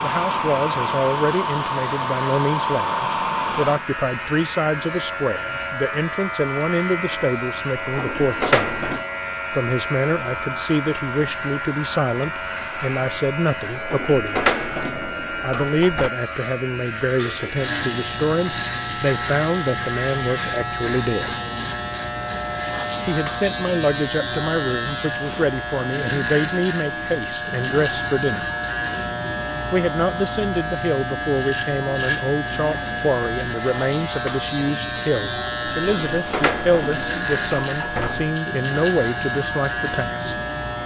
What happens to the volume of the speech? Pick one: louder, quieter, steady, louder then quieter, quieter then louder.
steady.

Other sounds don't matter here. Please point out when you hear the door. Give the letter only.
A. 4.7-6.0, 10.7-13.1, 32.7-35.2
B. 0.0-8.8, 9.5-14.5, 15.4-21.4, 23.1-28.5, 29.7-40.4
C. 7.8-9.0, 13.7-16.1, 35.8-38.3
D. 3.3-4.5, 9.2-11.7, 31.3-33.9
C.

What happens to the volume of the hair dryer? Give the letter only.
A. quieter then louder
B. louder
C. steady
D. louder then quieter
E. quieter
E.